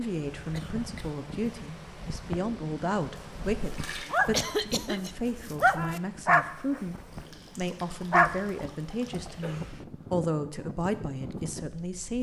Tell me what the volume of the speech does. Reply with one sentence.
The loudness of the speech stays about the same.